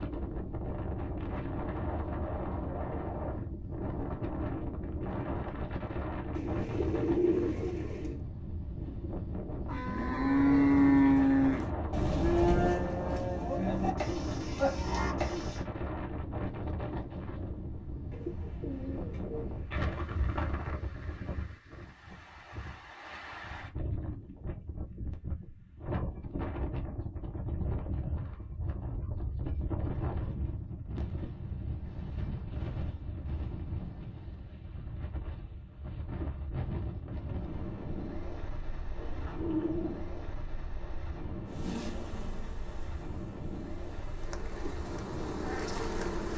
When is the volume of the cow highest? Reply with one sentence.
The volume of the cow peaks at 11 seconds.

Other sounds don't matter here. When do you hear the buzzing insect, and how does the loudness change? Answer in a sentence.
The buzzing insect can be heard from 41.5 to 46.3 s, getting quieter then louder.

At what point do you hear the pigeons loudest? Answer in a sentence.
The volume of the pigeons peaks at 7 seconds.